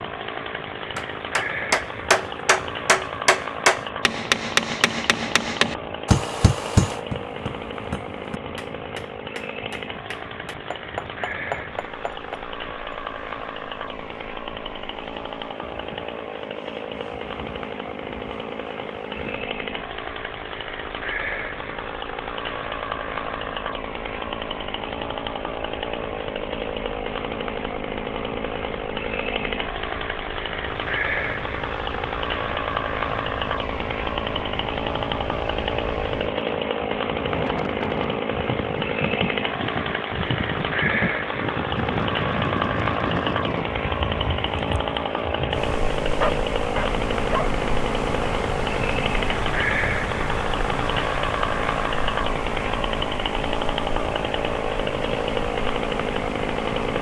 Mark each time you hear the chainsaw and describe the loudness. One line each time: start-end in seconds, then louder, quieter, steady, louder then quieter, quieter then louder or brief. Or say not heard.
0.0-56.9 louder.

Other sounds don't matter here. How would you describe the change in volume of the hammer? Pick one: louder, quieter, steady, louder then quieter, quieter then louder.
quieter then louder.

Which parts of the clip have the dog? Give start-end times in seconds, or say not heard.
46.1-47.5.